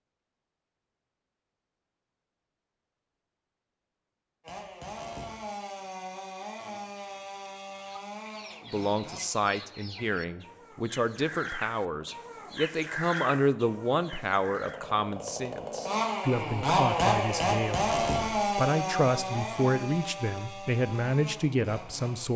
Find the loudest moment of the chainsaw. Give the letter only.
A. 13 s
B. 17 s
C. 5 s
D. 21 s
B.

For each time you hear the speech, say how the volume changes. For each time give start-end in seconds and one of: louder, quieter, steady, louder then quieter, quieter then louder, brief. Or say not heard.
8.7-22.3 steady.